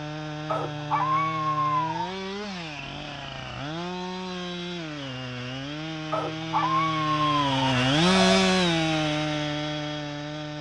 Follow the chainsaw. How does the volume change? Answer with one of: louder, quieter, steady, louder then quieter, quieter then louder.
louder.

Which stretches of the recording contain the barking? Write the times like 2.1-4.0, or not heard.
0.5-2.1, 6.1-8.6.